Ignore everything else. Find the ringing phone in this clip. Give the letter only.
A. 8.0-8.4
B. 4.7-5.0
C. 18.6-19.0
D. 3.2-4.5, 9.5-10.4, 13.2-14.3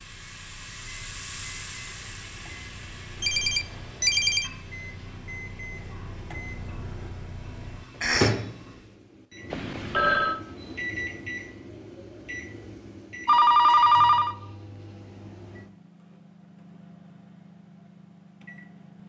D.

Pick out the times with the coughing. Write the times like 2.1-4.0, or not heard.
8.0-8.4.